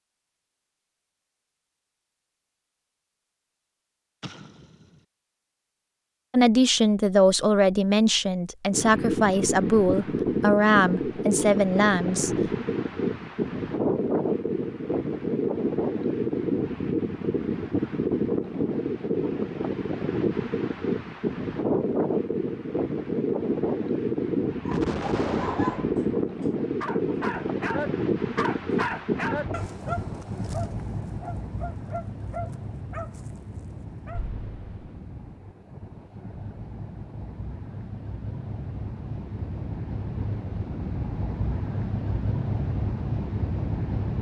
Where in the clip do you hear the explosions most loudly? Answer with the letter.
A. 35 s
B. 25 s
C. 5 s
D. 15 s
B.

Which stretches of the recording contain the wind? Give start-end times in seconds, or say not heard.
8.7-44.1.